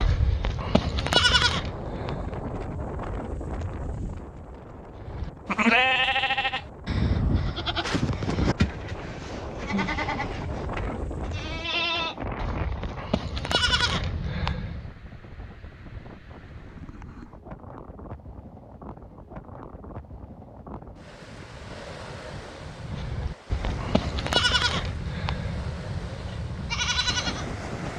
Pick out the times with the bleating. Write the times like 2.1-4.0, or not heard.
0.0-2.5, 5.0-14.9, 22.4-27.6.